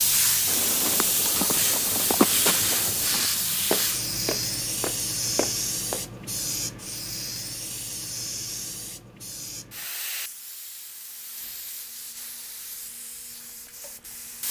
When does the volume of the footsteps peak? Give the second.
2 s.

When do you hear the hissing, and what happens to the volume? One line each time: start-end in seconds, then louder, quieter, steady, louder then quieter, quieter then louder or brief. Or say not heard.
0.0-14.4 quieter.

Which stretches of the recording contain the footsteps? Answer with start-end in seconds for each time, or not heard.
0.5-6.0.